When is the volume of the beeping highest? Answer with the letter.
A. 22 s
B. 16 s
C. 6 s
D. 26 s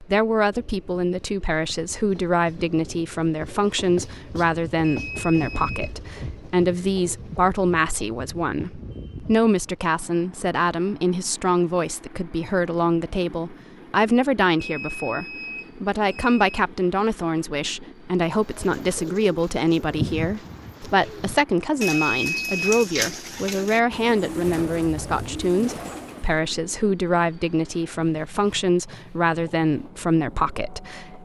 A.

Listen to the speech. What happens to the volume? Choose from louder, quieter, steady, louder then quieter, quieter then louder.
steady.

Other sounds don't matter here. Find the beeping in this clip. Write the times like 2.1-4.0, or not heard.
4.8-5.9, 14.6-16.4, 21.9-22.8.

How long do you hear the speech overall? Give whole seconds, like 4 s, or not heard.
31 s.